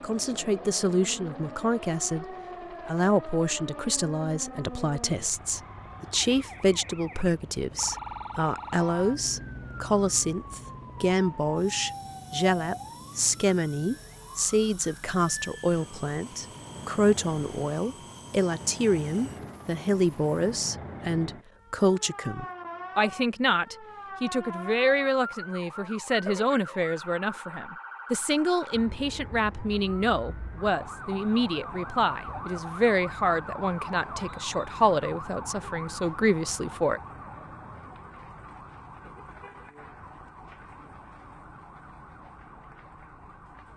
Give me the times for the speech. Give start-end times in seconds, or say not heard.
0.0-37.0.